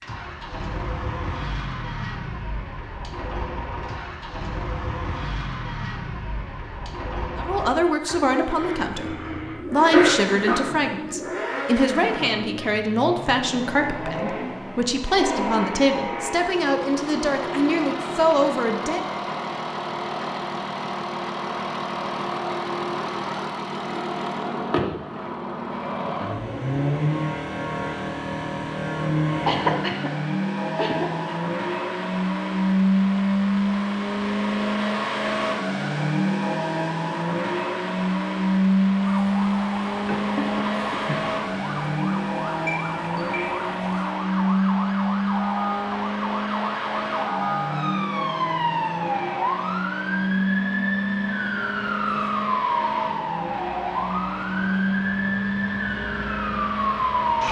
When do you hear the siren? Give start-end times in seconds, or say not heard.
39.0-57.4.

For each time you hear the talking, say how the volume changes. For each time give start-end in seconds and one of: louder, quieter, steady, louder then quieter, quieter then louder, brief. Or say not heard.
7.3-19.1 steady.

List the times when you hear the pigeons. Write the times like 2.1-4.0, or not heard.
not heard.